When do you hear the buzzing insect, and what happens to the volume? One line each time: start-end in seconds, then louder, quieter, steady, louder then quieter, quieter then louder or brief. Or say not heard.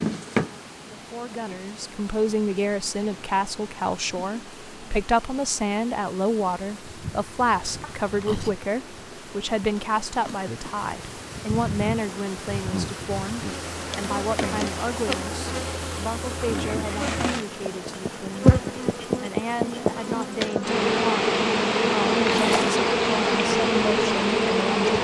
0.0-24.9 louder.